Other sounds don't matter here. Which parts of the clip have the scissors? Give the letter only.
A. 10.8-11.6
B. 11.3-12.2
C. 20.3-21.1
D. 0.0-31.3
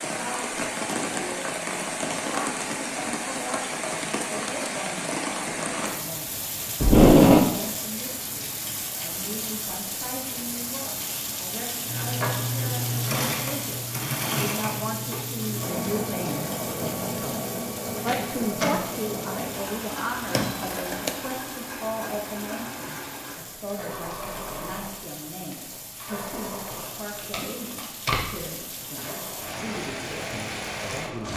C.